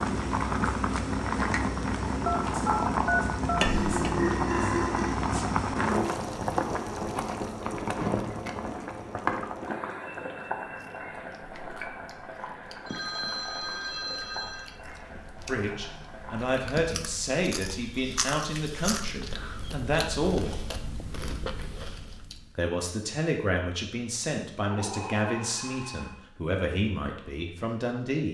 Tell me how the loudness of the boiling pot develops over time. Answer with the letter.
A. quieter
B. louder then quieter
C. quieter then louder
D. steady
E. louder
A.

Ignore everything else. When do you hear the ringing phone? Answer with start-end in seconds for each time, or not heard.
2.2-3.6, 12.8-14.7, 24.7-26.1.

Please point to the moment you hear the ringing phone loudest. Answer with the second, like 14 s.
3 s.